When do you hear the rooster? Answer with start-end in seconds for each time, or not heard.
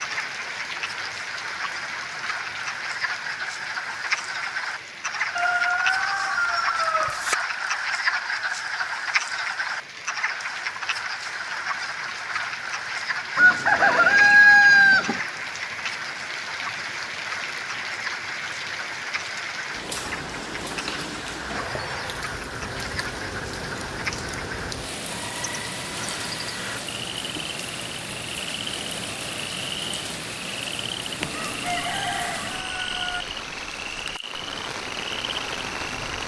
5.3-7.3, 13.3-15.2, 31.2-33.2.